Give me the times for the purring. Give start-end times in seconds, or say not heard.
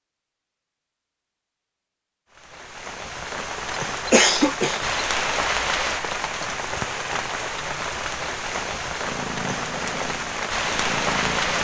9.1-11.5.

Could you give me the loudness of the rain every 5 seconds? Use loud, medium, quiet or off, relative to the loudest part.
medium, loud, loud.